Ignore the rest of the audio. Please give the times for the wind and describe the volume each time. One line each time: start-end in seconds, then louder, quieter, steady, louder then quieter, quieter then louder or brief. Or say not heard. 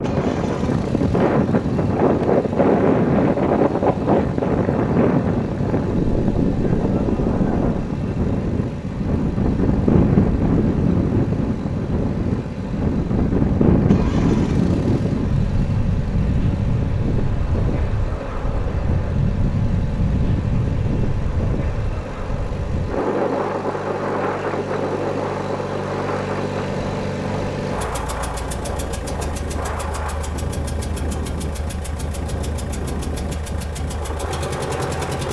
0.0-35.2 quieter.